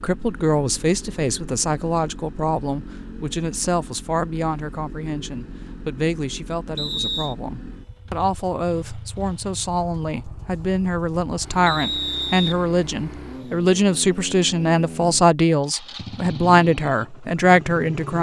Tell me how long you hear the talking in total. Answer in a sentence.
You can hear the talking for 18 seconds altogether.